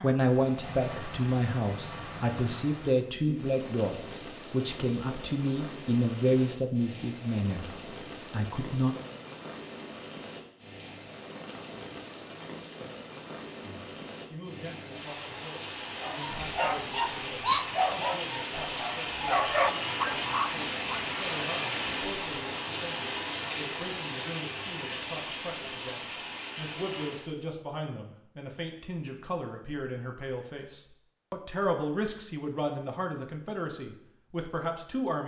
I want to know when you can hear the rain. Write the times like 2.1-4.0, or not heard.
0.0-27.3.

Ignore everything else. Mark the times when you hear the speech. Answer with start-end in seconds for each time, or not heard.
0.0-7.7, 8.3-8.9, 13.6-35.2.